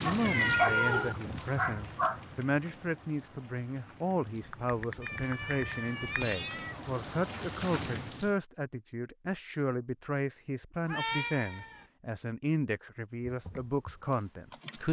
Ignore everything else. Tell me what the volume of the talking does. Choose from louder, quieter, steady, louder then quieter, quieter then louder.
steady.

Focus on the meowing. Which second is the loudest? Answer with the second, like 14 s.
1 s.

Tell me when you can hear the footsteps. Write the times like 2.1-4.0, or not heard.
not heard.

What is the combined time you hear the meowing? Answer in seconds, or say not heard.
4 s.